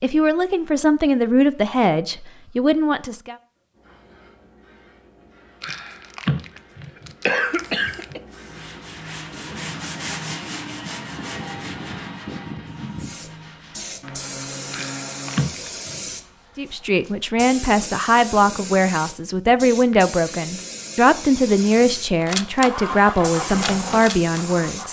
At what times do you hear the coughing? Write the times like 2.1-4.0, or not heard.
5.6-8.2, 14.7-16.0.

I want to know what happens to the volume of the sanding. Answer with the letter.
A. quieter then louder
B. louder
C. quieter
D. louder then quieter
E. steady
C.